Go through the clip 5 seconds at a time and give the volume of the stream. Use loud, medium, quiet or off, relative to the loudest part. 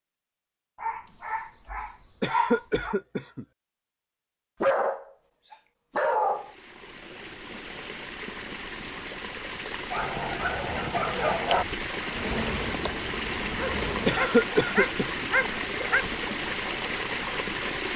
off, medium, loud, loud.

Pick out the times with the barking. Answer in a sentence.
You can hear the barking from 0.8 to 3.0 s, from 4.6 to 6.5 s, from 9.9 to 11.7 s and from 13.6 to 16.1 s.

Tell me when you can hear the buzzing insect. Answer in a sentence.
You can hear the buzzing insect from 12.1 to 14.2 s.